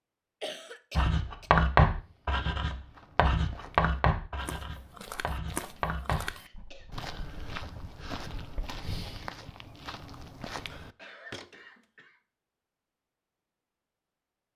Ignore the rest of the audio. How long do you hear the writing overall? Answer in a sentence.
You can hear the writing for 8 seconds altogether.